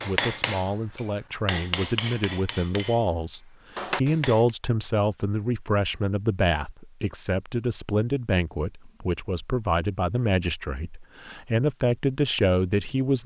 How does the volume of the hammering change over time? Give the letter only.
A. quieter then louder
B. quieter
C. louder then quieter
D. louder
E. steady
A.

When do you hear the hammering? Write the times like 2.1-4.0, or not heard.
0.0-4.5.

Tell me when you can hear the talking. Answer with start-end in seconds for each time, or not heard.
0.0-13.2.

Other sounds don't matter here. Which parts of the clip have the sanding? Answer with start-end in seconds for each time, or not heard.
not heard.